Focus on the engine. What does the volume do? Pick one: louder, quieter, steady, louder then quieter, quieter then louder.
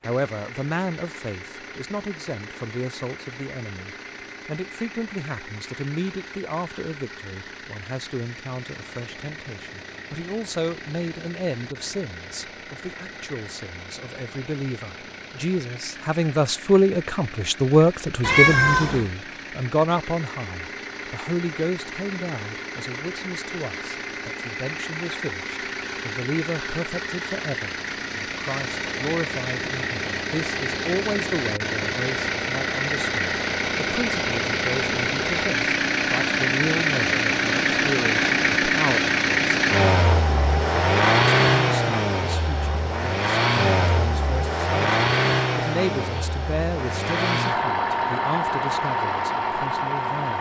louder.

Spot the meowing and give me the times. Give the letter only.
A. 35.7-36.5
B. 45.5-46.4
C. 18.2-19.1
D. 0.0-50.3
C.